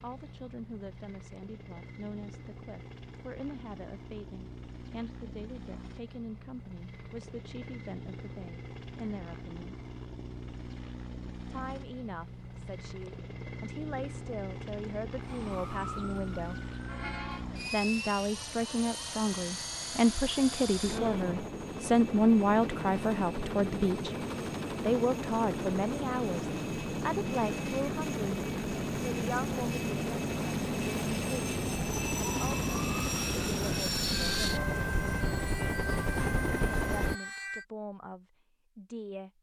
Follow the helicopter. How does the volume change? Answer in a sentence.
The volume of the helicopter goes up.